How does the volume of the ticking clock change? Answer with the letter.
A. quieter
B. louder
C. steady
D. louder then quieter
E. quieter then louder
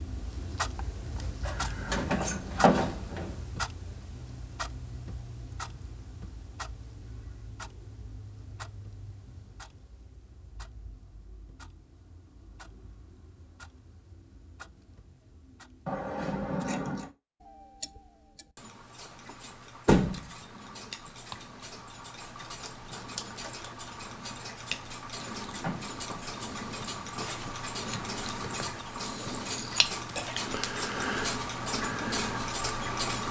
E.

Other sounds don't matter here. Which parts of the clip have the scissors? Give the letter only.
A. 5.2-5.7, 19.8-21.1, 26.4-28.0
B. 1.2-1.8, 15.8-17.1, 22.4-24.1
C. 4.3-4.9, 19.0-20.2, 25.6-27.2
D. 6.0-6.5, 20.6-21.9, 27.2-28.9
B.